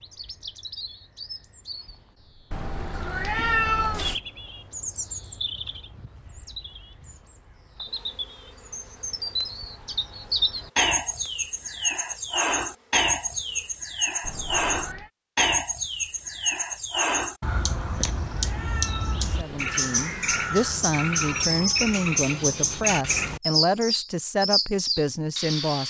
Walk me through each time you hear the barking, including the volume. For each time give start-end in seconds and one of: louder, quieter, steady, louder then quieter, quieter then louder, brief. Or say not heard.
not heard.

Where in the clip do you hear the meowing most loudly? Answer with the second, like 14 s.
4 s.